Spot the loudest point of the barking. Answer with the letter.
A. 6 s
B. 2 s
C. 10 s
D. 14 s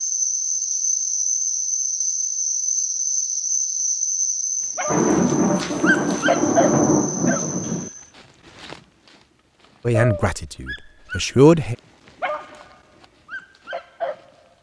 A.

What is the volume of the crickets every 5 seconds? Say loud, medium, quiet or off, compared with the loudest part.
loud, medium, off.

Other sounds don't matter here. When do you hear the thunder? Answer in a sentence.
You can hear the thunder from 4.8 to 7.9 s.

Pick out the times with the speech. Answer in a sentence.
The speech can be heard from 9.8 to 11.8 s.